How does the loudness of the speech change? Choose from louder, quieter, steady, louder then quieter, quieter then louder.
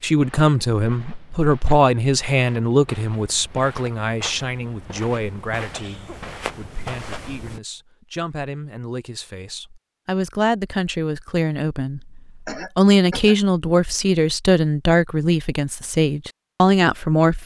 quieter then louder.